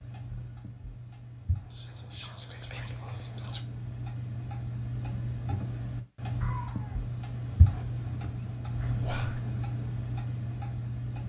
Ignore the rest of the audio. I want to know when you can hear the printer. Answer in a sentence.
You can't hear the printer here.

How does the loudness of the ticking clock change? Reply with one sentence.
The volume of the ticking clock goes up.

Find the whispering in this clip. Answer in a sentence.
You can hear the whispering from 1.7 to 3.6 s and from 9.0 to 9.4 s.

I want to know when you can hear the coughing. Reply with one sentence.
You can hear the coughing from 6.4 to 7.0 s.